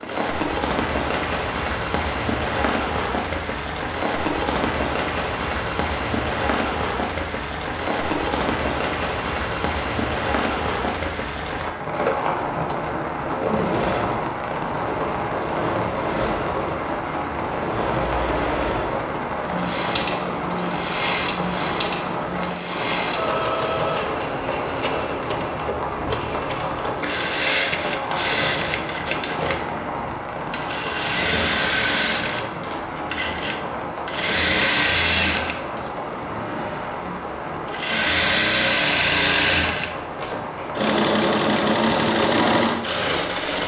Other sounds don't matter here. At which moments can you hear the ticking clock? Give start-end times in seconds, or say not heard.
not heard.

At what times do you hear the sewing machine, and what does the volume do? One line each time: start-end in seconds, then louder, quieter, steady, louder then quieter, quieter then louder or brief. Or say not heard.
0.0-43.6 louder.